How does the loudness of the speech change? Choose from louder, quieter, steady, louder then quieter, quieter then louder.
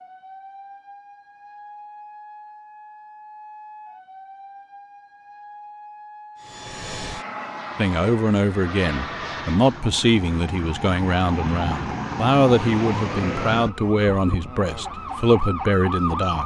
steady.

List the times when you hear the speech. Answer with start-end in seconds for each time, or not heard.
7.8-16.4.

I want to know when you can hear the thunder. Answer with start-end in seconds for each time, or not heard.
not heard.